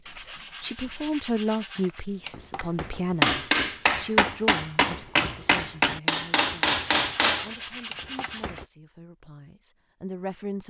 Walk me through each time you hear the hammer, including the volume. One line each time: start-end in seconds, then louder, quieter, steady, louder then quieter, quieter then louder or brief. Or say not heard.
2.2-8.7 steady.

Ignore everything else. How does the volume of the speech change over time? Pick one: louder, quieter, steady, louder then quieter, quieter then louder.
quieter then louder.